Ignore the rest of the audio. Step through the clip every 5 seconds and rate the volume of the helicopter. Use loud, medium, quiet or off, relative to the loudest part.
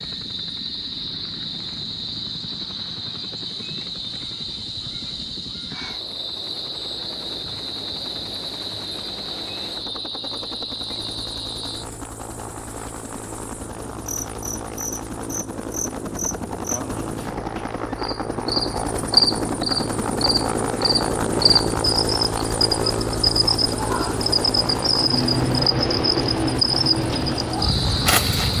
quiet, quiet, medium, loud, loud, medium.